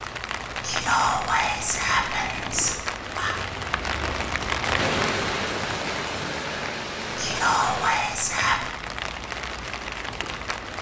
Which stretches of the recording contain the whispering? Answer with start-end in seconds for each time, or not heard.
0.6-3.4, 7.1-8.7.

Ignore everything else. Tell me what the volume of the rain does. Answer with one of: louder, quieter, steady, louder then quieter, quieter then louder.
louder then quieter.